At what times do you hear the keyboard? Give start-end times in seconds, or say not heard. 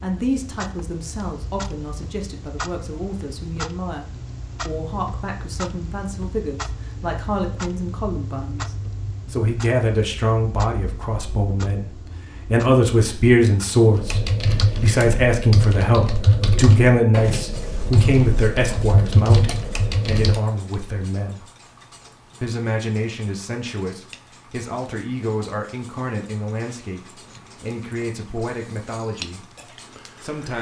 13.9-20.4.